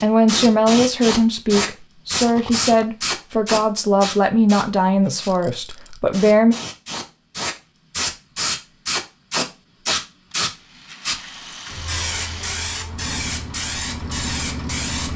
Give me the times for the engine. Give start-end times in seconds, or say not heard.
12.8-15.1.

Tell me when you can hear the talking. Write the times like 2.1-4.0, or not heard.
0.0-6.5.